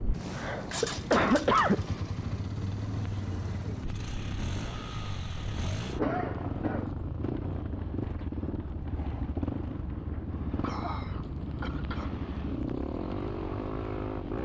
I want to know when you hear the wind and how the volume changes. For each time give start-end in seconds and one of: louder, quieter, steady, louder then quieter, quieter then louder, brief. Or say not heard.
0.0-14.4 steady.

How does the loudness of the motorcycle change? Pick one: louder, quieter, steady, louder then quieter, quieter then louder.
steady.